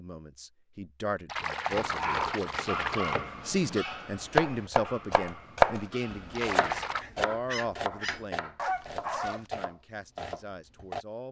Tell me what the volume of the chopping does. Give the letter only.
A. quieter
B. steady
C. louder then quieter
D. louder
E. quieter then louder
C.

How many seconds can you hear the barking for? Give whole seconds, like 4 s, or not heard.
8 s.